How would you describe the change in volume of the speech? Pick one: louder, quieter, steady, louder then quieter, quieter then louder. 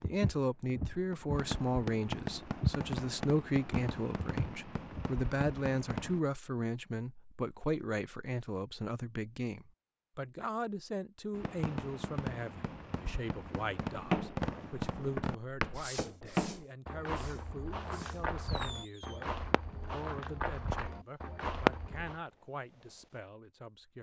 quieter.